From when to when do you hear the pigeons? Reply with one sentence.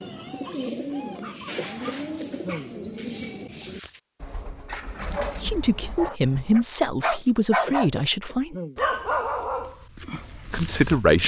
The pigeons can be heard from 0.0 to 6.7 s.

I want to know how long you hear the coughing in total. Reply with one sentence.
The coughing can be heard for 2 seconds in total.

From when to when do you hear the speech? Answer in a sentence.
The speech can be heard from 5.4 to 8.6 s and from 10.5 to 11.2 s.